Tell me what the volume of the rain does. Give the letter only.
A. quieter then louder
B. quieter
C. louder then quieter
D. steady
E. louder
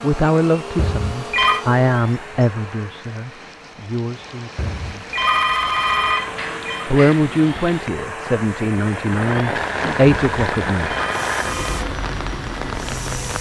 E.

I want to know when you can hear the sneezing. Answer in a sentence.
You can't hear the sneezing here.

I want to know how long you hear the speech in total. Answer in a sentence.
The speech can be heard for 9 seconds in total.